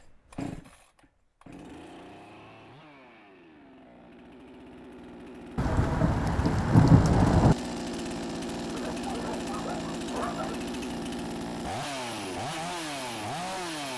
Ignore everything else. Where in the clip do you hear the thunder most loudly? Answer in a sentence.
The loudest moment of the thunder is at 7 seconds.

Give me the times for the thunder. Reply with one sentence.
The thunder can be heard from 5.5 to 7.5 s.